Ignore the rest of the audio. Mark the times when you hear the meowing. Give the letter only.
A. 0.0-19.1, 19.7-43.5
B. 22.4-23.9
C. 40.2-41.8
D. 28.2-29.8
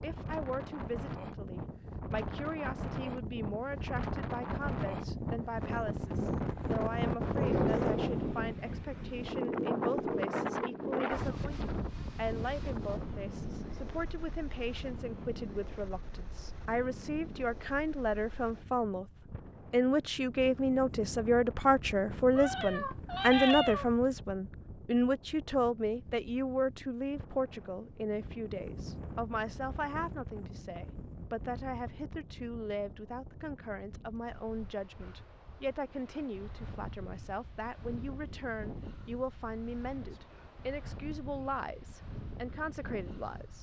B.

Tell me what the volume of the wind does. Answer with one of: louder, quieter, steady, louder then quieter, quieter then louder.
quieter.